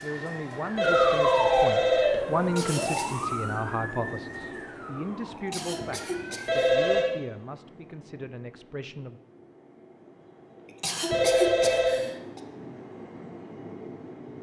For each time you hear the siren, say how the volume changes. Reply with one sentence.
The siren can be heard from 0.0 to 7.2 s, getting quieter.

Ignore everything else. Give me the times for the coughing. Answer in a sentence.
You can hear the coughing from 2.4 to 3.0 s, from 5.3 to 6.7 s and from 10.7 to 12.4 s.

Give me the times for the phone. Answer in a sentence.
The phone can be heard from 0.8 to 2.2 s, from 6.5 to 7.1 s and from 11.1 to 12.0 s.